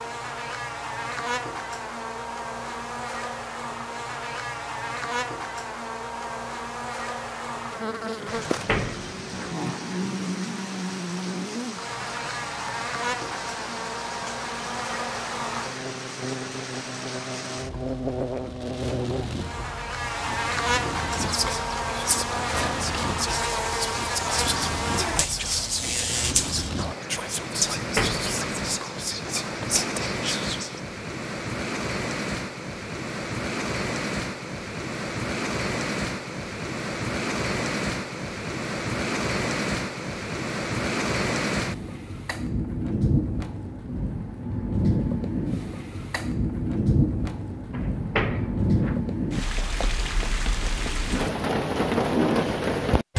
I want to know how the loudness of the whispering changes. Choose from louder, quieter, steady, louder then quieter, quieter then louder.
steady.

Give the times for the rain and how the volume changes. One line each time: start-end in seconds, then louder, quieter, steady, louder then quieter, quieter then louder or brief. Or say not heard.
8.2-53.1 louder.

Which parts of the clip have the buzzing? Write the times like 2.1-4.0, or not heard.
0.0-26.7.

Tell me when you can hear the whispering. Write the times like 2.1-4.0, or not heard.
21.1-30.8.